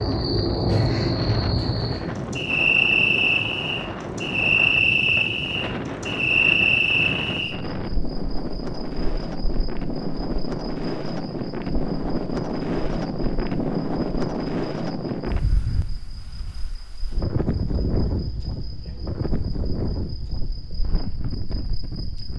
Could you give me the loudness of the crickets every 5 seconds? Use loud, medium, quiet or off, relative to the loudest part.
loud, loud, quiet, quiet, quiet.